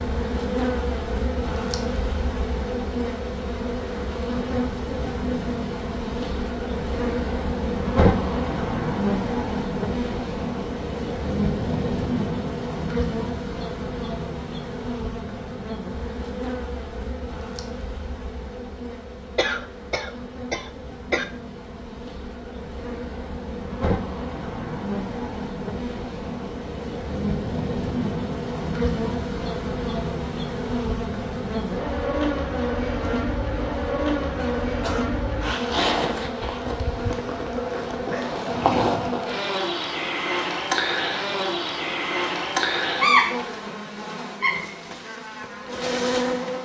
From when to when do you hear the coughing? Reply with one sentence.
The coughing can be heard from 19.4 to 21.2 s and from 34.4 to 35.1 s.